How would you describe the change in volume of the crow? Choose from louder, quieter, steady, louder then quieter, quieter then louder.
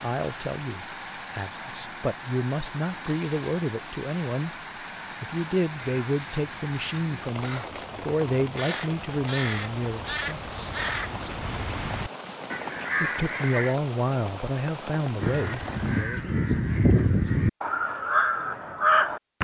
louder.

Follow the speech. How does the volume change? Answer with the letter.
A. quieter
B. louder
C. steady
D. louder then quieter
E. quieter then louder
C.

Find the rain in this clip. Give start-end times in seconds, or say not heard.
0.0-16.1.